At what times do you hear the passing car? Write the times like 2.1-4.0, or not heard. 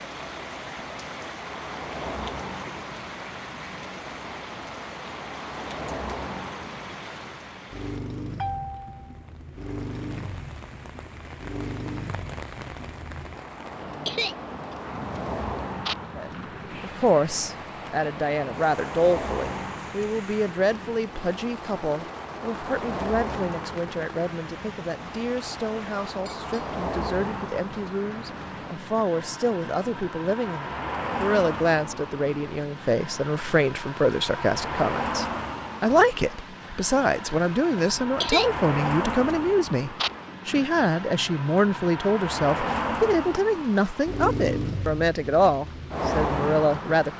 0.0-47.1.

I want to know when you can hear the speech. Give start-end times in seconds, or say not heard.
16.1-47.1.